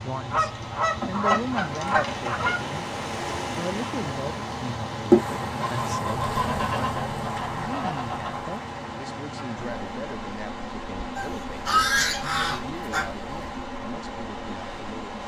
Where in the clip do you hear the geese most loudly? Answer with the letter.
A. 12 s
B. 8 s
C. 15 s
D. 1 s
A.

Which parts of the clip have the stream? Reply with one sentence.
The stream can be heard from 0.0 to 15.2 s.